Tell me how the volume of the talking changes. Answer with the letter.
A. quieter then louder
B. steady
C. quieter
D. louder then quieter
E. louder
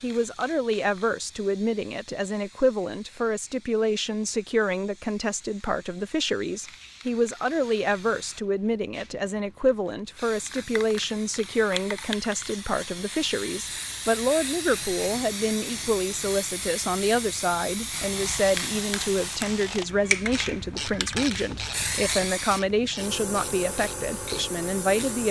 B.